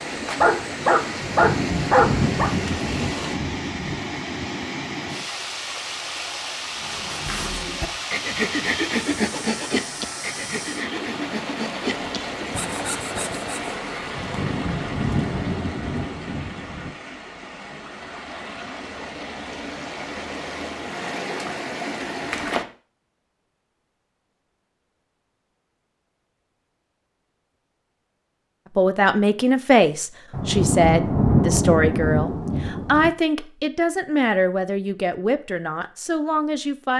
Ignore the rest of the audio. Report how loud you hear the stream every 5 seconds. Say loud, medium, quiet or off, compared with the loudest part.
loud, loud, loud, medium, loud, off, off, off.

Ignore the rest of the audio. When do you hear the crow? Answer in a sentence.
The crow can't be heard in this clip.